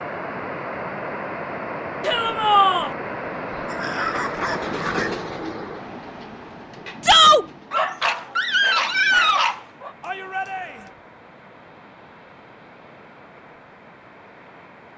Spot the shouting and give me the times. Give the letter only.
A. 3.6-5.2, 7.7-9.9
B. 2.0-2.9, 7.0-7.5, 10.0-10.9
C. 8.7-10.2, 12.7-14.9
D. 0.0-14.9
B.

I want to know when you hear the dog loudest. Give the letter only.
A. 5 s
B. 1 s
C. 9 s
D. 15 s
C.